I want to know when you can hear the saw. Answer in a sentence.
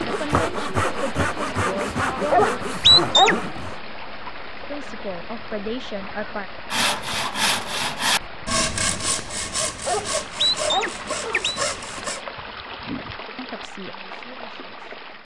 You can hear the saw from 0.0 to 3.8 s and from 6.7 to 12.2 s.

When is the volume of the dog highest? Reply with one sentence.
The volume of the dog peaks at 3 seconds.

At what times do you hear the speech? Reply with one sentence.
You can hear the speech from 0.0 to 2.5 s, from 4.7 to 6.5 s and from 12.8 to 14.9 s.